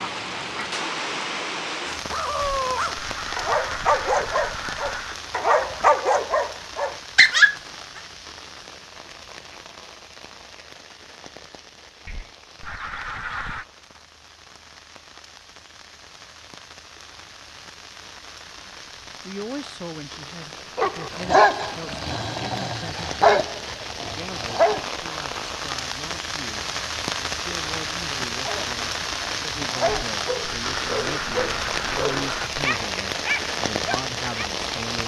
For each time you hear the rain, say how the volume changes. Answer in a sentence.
You can hear the rain from 0.0 to 35.0 s, getting quieter then louder.